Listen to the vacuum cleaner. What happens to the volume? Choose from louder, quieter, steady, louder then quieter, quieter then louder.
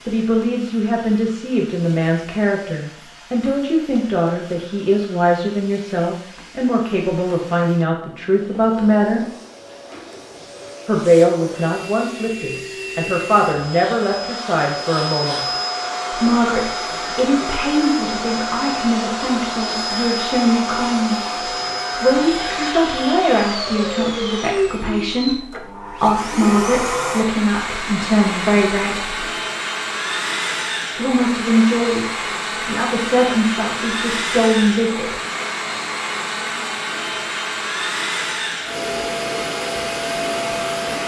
louder.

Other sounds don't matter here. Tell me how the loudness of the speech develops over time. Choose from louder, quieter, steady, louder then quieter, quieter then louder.
steady.